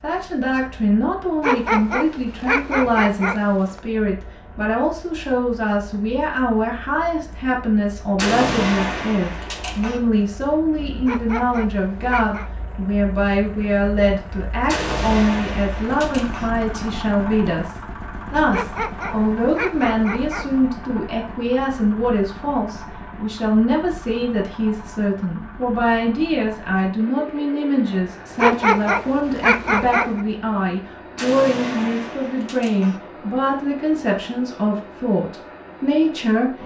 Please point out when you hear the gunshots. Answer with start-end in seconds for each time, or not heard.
8.2-10.0, 14.7-16.5, 31.1-33.0.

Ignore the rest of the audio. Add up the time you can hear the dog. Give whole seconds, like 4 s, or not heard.
8 s.